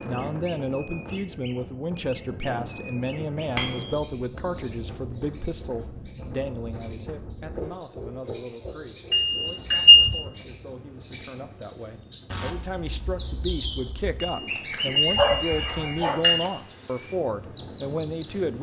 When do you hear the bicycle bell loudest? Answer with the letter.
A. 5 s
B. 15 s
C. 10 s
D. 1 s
C.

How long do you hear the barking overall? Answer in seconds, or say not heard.
2 s.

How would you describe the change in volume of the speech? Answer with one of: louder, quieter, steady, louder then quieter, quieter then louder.
quieter then louder.